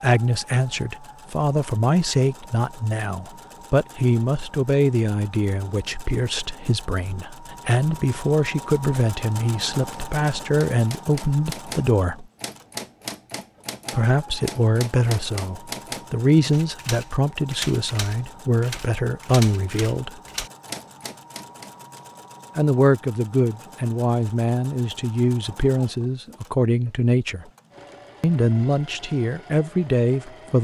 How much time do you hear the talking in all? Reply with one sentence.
The talking can be heard for 26 seconds in total.